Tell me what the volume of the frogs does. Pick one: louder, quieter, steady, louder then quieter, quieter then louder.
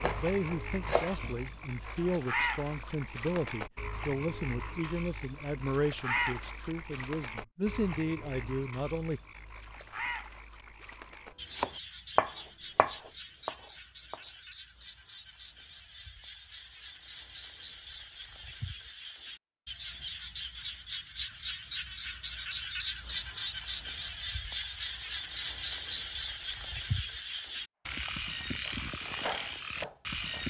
quieter then louder.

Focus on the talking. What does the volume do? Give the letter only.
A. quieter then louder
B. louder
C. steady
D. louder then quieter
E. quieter
C.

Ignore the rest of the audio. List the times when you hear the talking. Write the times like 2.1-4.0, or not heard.
0.0-9.2.